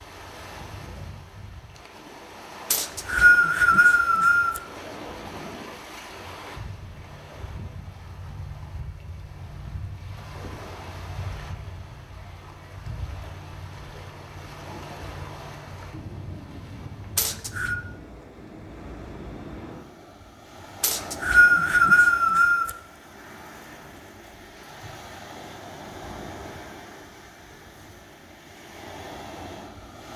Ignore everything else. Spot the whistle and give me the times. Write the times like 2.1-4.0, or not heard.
2.7-4.6, 17.1-17.8, 20.8-22.7.